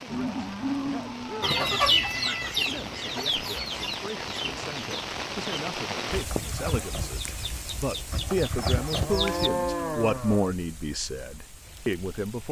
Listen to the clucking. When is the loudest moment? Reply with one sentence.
The volume of the clucking peaks at 2 seconds.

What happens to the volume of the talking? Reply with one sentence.
The volume of the talking goes up.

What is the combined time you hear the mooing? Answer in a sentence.
You can hear the mooing for 3 seconds altogether.